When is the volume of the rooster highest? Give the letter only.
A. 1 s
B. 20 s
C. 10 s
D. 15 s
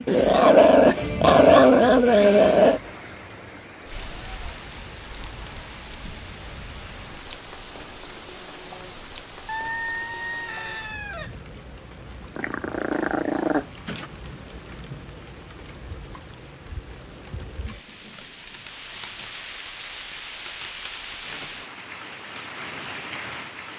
C.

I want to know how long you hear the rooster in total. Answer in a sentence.
You can hear the rooster for 2 seconds altogether.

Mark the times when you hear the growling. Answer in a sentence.
The growling can be heard from 0.1 to 2.8 s and from 12.3 to 14.1 s.